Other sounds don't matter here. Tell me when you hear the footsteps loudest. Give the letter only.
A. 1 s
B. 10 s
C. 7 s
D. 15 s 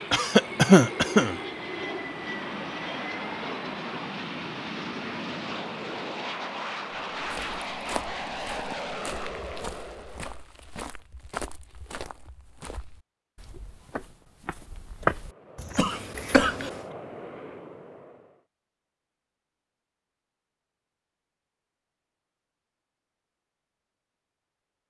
D.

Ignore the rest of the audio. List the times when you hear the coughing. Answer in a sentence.
You can hear the coughing from 0.1 to 1.4 s and from 15.8 to 16.7 s.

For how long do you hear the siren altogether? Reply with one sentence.
The siren can't be heard in this clip.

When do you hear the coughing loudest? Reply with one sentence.
The volume of the coughing peaks at 1 second.